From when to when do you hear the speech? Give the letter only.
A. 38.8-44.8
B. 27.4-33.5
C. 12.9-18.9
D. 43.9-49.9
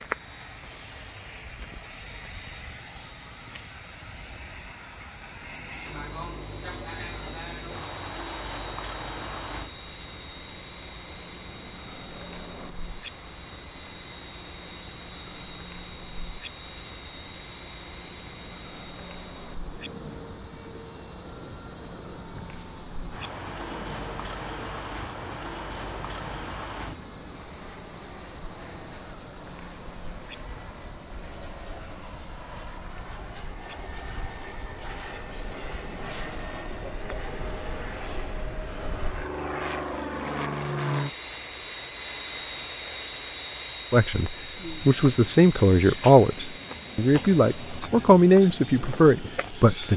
D.